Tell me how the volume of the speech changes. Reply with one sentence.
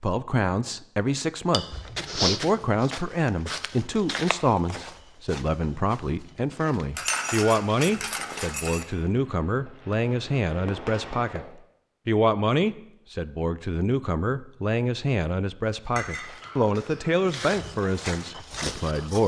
The loudness of the speech stays about the same.